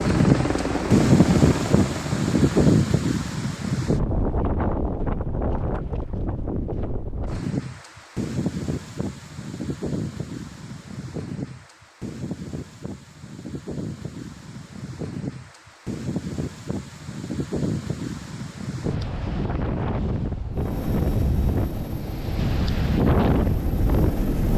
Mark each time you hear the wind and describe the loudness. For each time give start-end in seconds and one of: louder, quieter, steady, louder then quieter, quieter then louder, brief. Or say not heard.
0.0-24.3 quieter then louder.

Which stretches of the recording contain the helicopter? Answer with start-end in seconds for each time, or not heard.
0.0-2.8, 20.5-24.5.